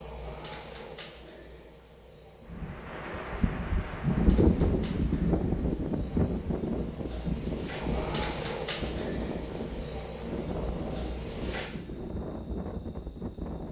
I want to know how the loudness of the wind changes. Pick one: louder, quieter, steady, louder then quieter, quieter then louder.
quieter.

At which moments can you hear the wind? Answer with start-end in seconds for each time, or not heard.
2.5-13.6.